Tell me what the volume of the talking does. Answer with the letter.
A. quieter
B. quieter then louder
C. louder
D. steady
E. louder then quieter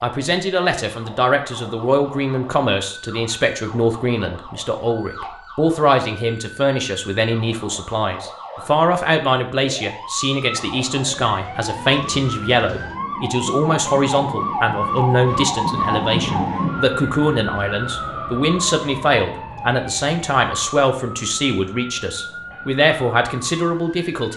D.